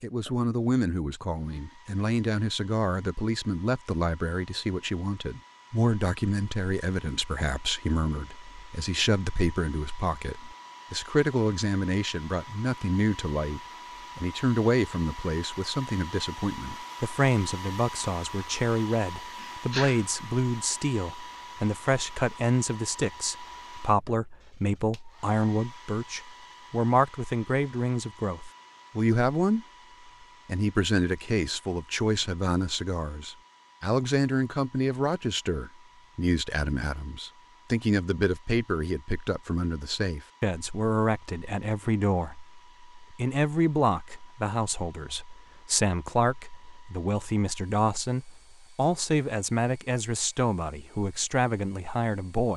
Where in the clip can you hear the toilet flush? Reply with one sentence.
The toilet flush can't be heard in this clip.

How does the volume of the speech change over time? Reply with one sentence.
The volume of the speech stays about the same.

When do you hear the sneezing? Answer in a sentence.
The sneezing can be heard from 19.4 to 20.1 s.